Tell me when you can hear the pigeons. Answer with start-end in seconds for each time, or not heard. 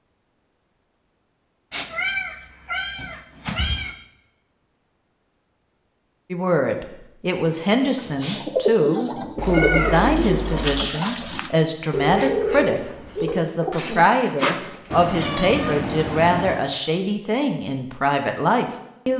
7.8-15.1.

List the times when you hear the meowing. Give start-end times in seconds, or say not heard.
1.7-4.0, 9.3-10.8, 14.9-16.6.